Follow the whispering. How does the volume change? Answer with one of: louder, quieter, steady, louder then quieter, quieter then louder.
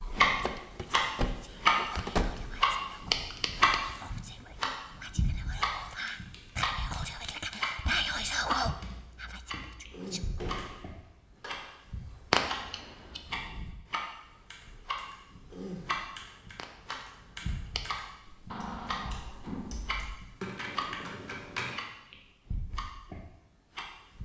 louder.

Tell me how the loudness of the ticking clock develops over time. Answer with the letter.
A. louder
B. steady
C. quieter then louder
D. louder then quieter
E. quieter
E.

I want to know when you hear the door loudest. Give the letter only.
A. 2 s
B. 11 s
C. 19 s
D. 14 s
A.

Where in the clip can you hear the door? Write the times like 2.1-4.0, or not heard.
0.3-2.5, 10.2-11.8, 18.4-20.1.